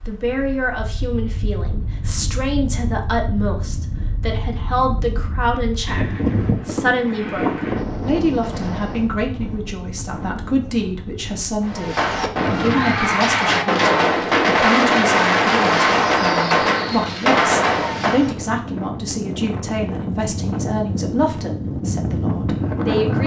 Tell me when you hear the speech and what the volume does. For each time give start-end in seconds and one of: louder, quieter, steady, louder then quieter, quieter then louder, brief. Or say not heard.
0.1-23.2 steady.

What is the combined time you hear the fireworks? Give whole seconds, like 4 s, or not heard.
7 s.